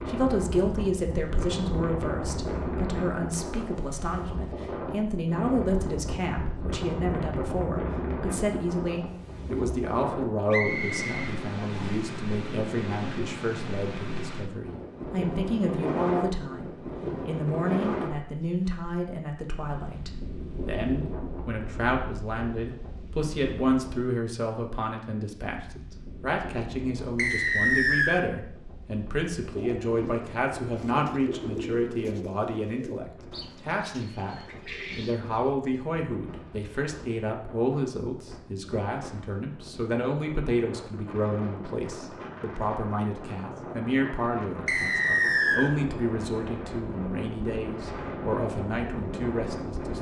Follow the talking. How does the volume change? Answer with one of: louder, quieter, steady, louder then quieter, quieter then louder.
steady.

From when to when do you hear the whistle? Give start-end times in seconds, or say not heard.
10.5-12.0, 27.1-28.2, 44.6-45.7.